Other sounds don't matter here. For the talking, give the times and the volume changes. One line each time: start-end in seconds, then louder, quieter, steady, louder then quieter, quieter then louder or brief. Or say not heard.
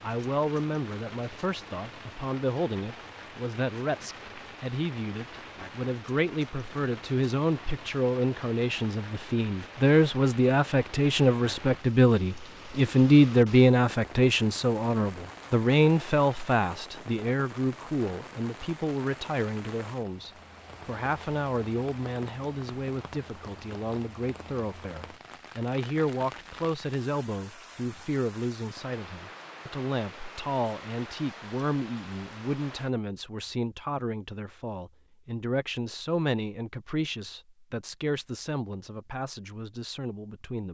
0.0-40.6 louder then quieter.